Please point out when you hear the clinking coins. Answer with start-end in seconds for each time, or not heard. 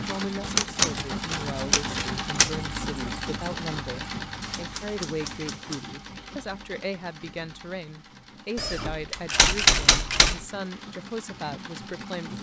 not heard.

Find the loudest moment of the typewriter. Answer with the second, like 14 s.
10 s.